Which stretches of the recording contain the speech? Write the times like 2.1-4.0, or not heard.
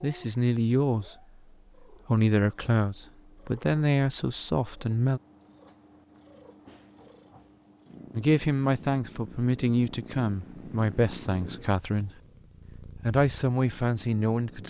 0.0-1.1, 2.0-5.2, 8.2-12.1, 12.8-14.6.